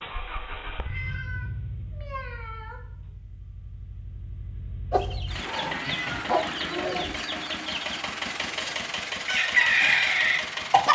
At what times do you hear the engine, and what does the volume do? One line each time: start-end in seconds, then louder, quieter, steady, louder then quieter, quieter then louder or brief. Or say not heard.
0.0-10.8 quieter then louder.